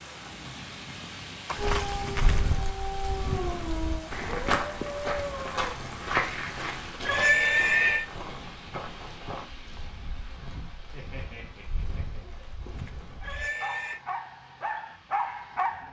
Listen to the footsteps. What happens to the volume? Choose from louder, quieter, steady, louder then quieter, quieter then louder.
louder then quieter.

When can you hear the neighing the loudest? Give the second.
7 s.